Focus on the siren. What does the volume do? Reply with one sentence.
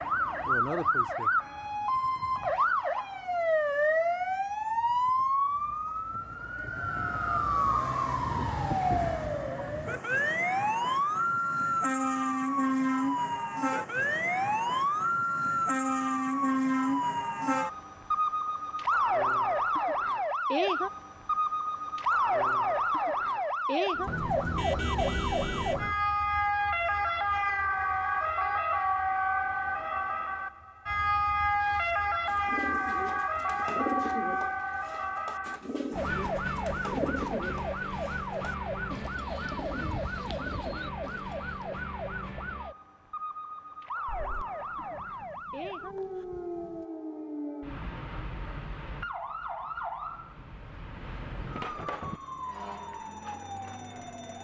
The volume of the siren goes down.